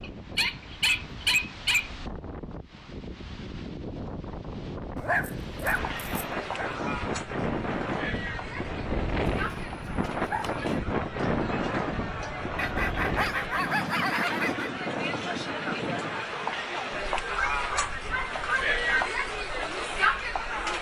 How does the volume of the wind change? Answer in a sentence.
The loudness of the wind goes up, then down.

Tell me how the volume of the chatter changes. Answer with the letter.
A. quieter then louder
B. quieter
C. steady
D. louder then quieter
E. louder
E.